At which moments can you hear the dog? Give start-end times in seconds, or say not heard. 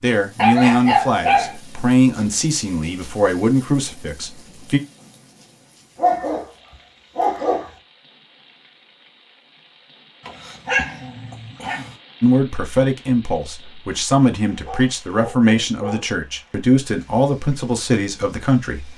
0.3-1.6, 6.0-6.5, 7.2-7.7, 10.2-11.9, 14.4-16.1.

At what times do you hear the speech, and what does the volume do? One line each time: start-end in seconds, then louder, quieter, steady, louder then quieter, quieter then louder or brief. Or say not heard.
0.0-4.8 quieter
12.2-18.9 steady.